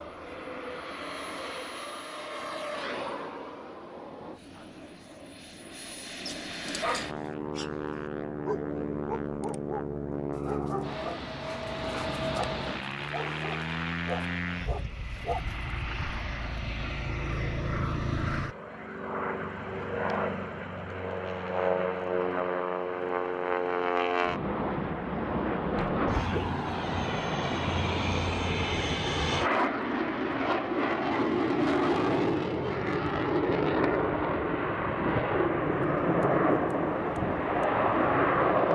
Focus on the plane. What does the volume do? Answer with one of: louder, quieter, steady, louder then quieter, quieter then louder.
louder.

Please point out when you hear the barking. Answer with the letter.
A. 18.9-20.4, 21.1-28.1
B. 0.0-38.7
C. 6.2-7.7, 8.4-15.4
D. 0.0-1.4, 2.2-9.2
C.